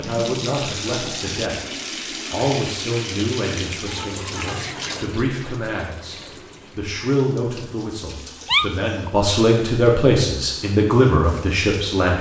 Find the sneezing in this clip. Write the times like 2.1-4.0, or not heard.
8.4-9.1.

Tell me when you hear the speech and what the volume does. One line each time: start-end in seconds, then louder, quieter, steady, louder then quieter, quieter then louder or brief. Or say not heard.
0.0-1.7 brief
2.3-12.1 louder.